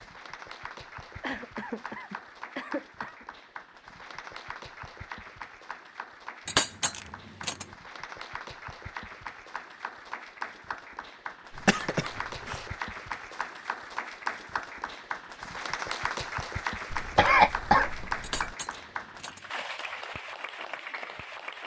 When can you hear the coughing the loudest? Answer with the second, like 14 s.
17 s.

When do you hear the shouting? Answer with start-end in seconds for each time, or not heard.
not heard.